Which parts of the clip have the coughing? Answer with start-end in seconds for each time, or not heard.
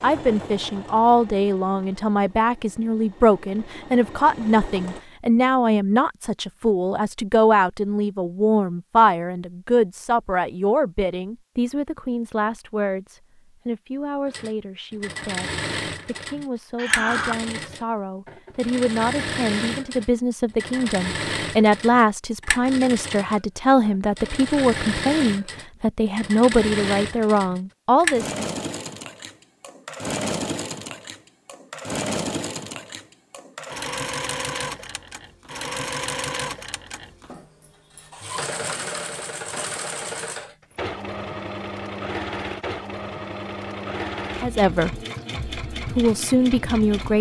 16.8-17.4.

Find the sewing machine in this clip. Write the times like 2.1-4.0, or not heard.
0.0-5.0, 14.2-47.1.